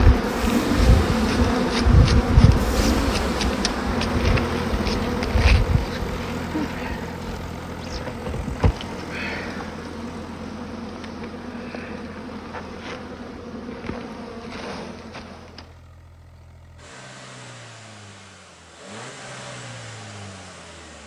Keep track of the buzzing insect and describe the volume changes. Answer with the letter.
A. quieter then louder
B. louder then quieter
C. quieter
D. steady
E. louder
C.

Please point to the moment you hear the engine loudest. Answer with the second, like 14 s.
3 s.